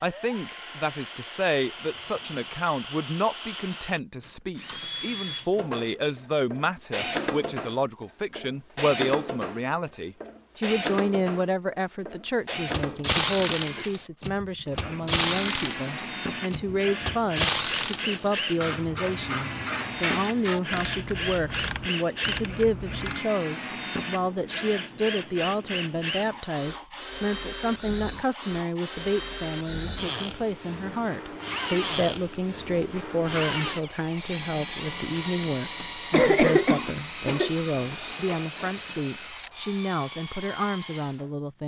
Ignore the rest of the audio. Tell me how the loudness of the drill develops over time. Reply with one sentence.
The loudness of the drill stays about the same.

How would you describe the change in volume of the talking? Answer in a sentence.
The loudness of the talking stays about the same.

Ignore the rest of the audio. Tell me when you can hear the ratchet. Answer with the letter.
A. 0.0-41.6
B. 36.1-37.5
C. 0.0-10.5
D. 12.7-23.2
D.